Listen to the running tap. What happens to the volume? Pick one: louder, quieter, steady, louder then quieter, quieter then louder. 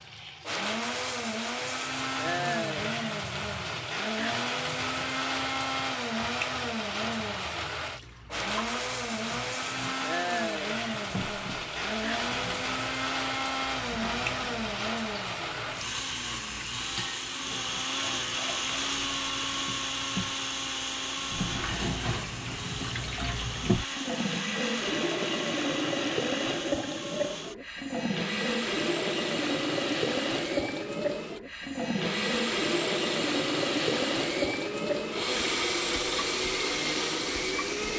louder.